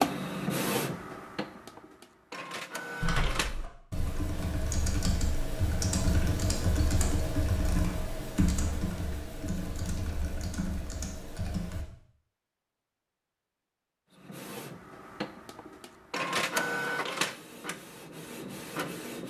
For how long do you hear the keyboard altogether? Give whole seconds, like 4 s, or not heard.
9 s.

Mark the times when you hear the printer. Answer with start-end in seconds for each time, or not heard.
0.0-3.5, 14.2-19.2.